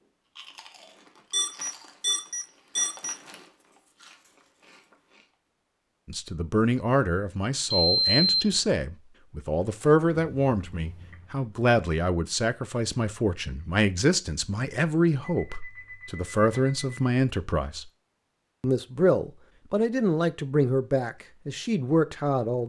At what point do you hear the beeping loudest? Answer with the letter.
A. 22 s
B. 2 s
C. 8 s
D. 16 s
C.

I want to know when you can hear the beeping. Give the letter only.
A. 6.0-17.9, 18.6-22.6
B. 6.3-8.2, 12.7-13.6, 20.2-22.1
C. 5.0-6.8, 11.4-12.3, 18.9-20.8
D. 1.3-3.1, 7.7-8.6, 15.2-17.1
D.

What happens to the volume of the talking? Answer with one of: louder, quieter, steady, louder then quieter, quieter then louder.
steady.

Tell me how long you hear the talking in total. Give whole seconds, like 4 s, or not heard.
16 s.